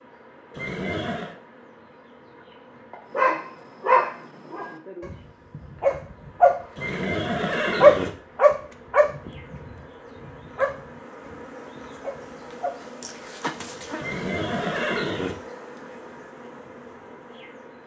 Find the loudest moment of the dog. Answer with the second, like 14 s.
8 s.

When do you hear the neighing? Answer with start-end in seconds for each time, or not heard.
0.5-1.4, 6.8-8.1, 13.9-15.3.